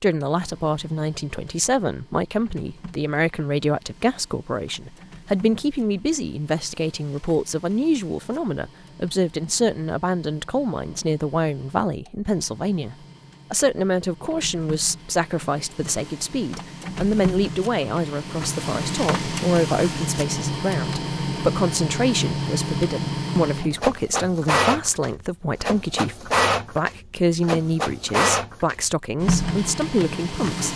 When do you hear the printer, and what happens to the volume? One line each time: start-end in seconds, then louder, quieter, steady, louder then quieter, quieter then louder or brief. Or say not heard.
0.2-30.7 louder.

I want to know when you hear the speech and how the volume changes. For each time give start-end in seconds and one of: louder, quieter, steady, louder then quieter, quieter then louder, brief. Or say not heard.
0.0-30.7 steady.